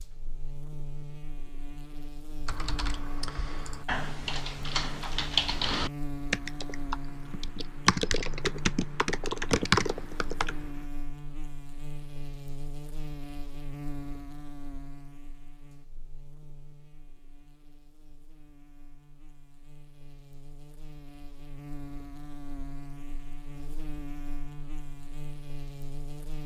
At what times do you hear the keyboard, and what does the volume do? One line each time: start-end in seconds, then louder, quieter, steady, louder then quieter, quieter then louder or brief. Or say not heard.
2.5-10.7 louder.